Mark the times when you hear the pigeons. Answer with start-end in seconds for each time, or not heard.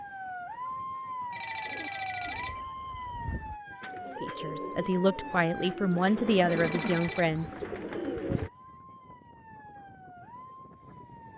1.6-8.5.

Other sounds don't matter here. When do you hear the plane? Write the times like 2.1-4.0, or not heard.
not heard.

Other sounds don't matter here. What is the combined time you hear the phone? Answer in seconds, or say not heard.
2 s.